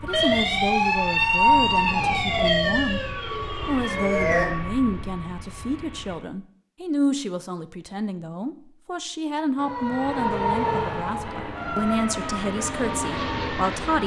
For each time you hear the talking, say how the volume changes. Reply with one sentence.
The talking can be heard from 0.0 to 14.0 s, at a steady volume.